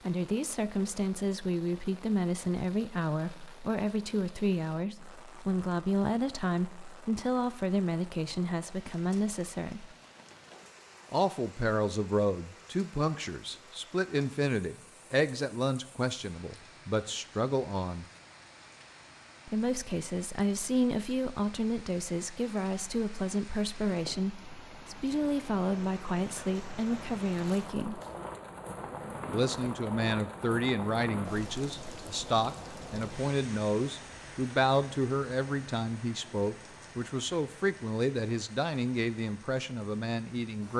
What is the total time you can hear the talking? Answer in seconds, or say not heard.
37 s.